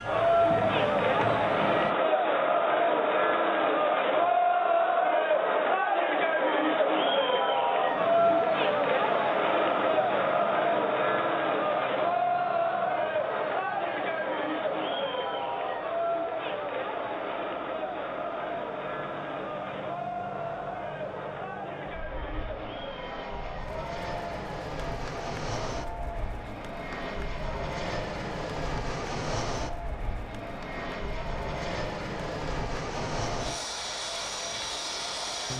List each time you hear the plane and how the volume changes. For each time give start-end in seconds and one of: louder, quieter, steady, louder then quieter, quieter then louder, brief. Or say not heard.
0.0-1.9 brief
7.8-35.5 louder.